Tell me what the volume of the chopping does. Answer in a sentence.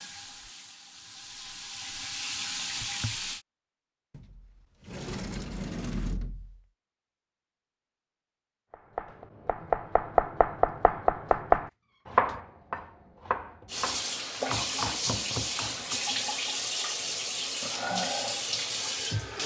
The loudness of the chopping goes down.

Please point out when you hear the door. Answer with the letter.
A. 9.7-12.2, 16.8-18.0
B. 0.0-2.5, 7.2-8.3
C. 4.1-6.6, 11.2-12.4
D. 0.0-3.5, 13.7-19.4
C.